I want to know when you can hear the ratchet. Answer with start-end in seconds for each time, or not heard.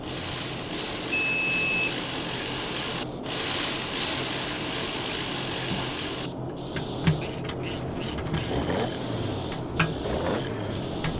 0.0-11.1.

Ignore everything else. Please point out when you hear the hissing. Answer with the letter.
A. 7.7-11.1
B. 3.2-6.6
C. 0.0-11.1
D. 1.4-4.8
C.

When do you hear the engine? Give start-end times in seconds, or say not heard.
7.7-11.1.